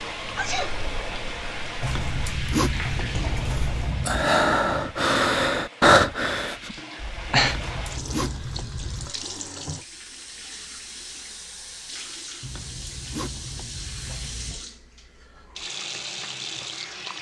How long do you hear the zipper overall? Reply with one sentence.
You can hear the zipper for 6 seconds altogether.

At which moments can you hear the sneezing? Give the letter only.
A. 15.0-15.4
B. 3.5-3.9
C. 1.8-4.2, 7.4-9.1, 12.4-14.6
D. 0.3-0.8
D.